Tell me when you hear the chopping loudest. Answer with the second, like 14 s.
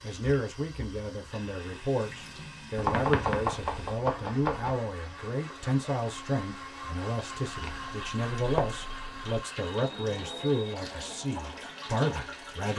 3 s.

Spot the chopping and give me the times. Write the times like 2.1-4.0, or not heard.
2.8-4.8, 7.4-9.3.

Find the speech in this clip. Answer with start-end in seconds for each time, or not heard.
0.0-12.7.